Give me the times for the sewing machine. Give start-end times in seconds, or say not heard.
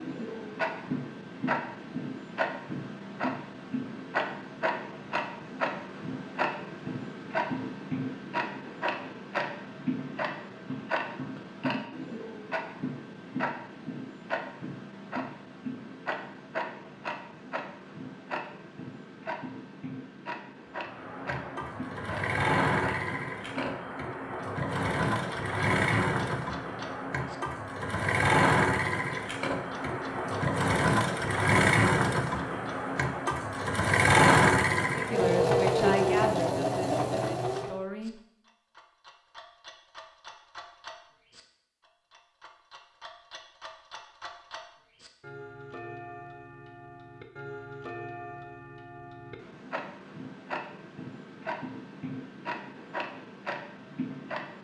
20.8-37.8.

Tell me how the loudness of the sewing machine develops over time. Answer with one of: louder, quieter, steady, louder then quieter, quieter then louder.
louder.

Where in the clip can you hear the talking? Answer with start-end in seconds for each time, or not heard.
35.0-38.1.